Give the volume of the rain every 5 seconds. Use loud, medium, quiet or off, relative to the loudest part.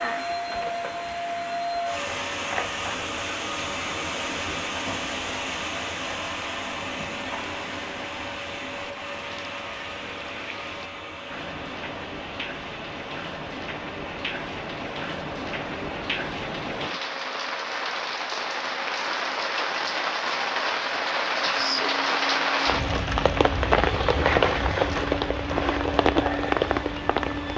quiet, quiet, quiet, medium, loud, loud.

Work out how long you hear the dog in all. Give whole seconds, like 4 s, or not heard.
not heard.